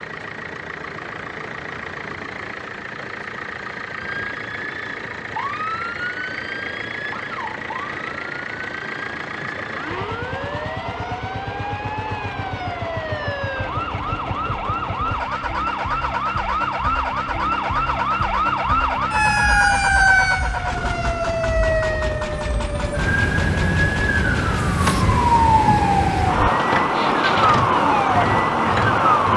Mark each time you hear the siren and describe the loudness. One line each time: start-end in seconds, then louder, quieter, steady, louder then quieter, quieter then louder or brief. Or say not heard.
3.9-29.3 louder.